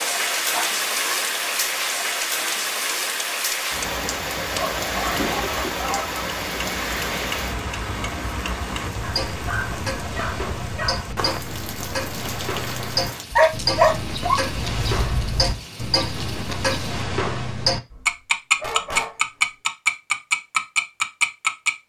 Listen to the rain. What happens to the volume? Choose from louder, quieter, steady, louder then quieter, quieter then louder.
quieter.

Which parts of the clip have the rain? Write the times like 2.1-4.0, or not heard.
0.0-17.1.